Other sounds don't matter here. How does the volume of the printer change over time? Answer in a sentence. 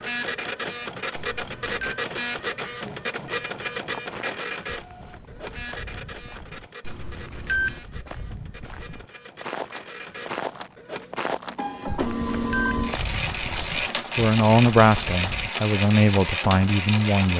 The volume of the printer goes down, then up.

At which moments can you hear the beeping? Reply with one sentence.
The beeping can be heard from 1.1 to 2.0 s, from 6.8 to 7.8 s and from 11.8 to 12.8 s.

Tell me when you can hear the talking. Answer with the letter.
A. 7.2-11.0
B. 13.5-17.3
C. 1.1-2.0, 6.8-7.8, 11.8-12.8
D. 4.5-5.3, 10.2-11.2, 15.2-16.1
B.